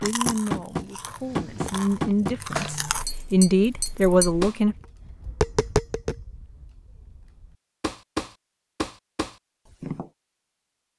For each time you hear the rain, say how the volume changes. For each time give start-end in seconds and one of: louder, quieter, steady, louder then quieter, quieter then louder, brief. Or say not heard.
not heard.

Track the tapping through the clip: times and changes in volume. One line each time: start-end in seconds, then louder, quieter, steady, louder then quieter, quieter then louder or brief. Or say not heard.
0.0-10.1 quieter then louder.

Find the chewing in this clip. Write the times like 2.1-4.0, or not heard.
0.0-3.0.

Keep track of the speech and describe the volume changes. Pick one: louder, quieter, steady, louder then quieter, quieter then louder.
louder.